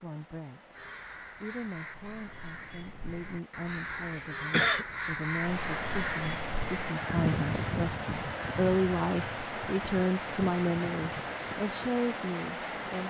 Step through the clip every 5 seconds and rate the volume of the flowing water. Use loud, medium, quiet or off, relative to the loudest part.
quiet, loud, loud.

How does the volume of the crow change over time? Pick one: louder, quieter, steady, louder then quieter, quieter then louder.
louder then quieter.